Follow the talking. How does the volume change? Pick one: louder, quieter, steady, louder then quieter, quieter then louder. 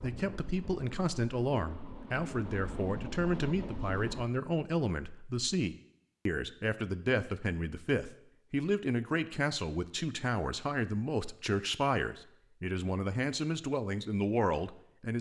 steady.